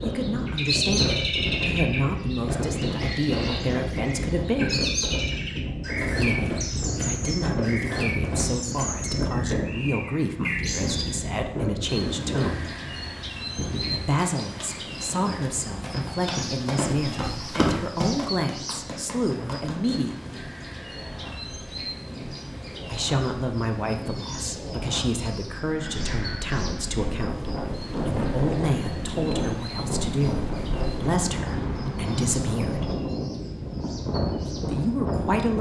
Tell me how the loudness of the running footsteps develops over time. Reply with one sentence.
The volume of the running footsteps goes up, then down.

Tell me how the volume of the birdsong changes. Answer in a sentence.
The volume of the birdsong goes down.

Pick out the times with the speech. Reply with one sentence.
You can hear the speech from 0.0 to 4.8 s, from 6.2 to 12.7 s, from 13.9 to 20.4 s, from 22.9 to 32.9 s and from 34.5 to 35.5 s.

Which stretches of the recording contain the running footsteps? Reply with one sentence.
The running footsteps can be heard from 14.6 to 20.1 s.